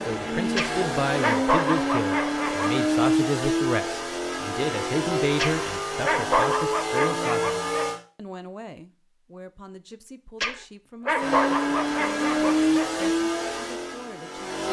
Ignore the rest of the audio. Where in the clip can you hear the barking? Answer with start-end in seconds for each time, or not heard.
0.6-2.8, 5.3-7.9, 10.4-13.1.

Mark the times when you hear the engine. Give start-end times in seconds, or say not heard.
0.0-8.0, 11.2-14.6.